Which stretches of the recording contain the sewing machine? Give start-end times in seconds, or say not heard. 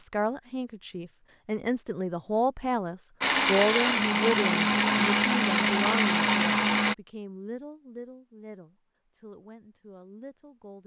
3.2-7.0.